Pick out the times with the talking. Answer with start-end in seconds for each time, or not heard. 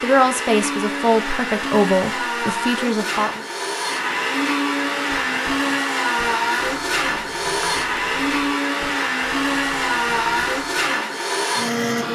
0.0-3.4.